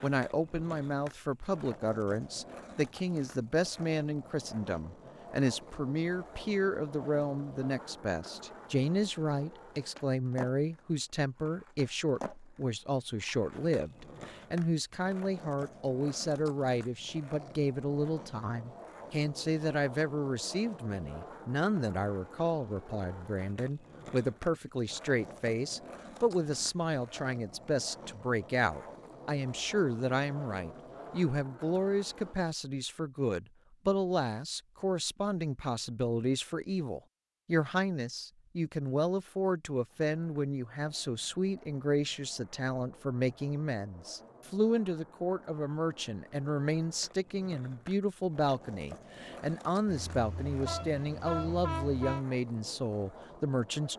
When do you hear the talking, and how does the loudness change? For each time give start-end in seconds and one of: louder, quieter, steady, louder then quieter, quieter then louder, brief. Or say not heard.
0.0-53.9 steady.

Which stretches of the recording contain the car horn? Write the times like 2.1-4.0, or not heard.
49.9-52.2.